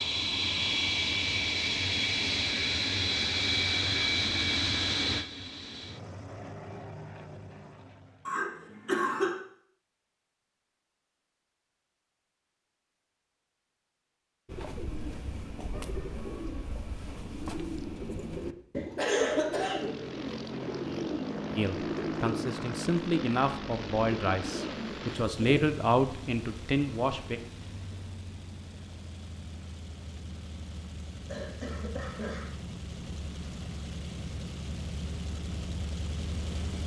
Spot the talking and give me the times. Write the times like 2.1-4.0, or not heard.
21.6-27.4.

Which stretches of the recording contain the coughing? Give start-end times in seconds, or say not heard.
8.2-9.3, 18.9-19.9, 31.2-32.5.